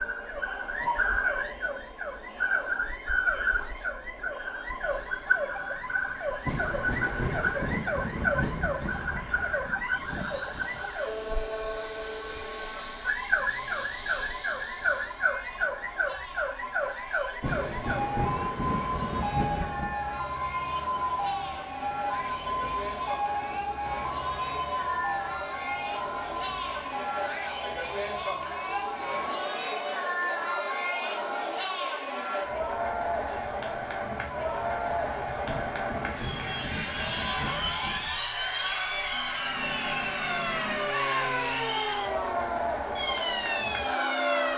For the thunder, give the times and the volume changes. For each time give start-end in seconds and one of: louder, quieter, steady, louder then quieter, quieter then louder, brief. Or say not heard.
6.5-10.8 quieter
17.4-19.9 brief
35.5-38.2 brief.